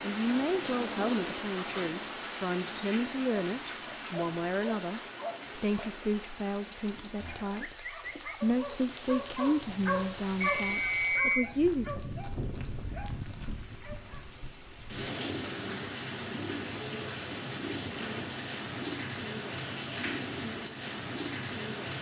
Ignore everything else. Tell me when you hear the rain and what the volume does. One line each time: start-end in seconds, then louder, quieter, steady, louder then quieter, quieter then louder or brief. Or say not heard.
0.0-21.9 quieter then louder.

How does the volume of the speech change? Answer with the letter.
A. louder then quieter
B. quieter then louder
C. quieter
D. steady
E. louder
D.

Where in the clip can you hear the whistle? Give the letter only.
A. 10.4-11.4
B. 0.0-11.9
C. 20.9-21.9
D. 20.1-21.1
A.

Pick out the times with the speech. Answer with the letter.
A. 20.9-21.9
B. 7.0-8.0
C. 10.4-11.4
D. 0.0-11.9
D.